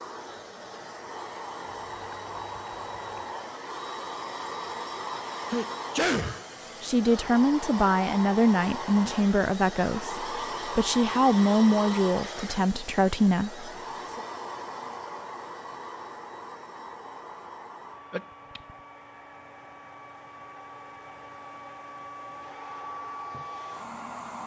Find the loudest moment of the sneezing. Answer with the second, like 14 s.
6 s.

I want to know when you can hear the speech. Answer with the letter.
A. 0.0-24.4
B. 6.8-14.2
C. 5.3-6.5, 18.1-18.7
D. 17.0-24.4
B.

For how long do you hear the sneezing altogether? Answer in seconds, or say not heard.
2 s.